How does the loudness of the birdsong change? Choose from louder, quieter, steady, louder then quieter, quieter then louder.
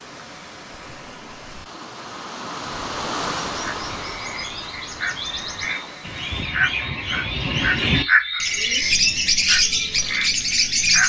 louder.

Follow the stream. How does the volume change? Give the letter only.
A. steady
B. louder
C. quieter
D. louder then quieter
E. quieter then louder
D.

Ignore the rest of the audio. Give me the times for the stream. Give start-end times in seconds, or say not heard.
0.0-6.5.